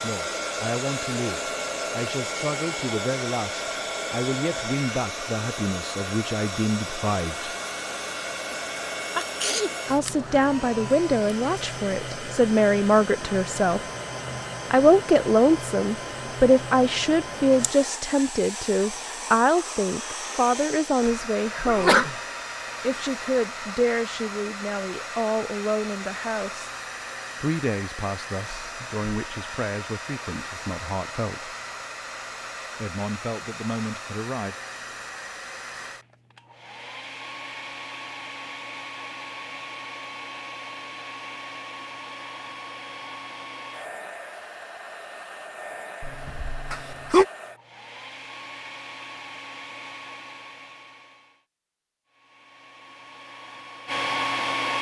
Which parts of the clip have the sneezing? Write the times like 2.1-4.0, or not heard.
8.5-9.8, 21.6-22.1, 46.0-47.2.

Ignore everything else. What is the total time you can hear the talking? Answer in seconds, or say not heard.
29 s.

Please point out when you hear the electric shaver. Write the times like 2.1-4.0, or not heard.
not heard.